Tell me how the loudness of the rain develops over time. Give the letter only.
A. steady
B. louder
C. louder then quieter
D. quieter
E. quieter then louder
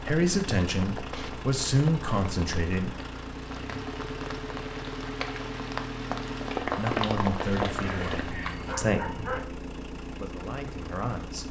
B.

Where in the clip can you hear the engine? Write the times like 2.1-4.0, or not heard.
0.0-11.4.